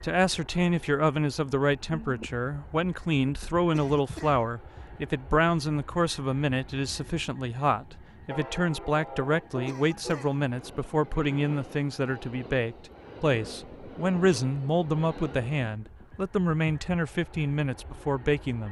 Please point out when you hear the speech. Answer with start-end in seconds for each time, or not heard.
0.0-18.6.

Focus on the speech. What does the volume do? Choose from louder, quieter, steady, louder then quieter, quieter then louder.
steady.